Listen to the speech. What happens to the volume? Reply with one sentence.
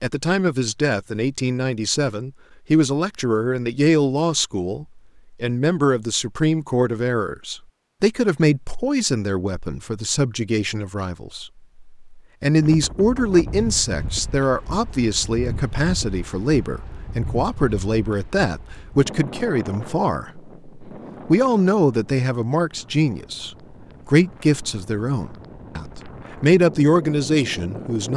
The loudness of the speech stays about the same.